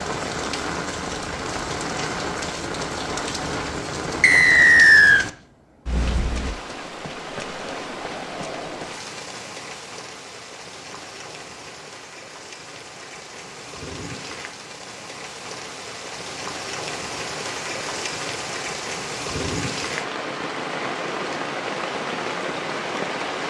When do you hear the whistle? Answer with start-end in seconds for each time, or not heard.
4.2-5.2.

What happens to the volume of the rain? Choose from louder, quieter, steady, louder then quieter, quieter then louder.
quieter then louder.